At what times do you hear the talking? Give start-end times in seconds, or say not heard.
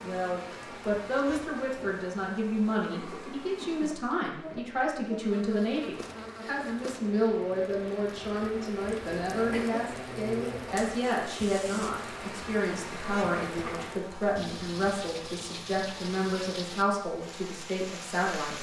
0.0-18.5.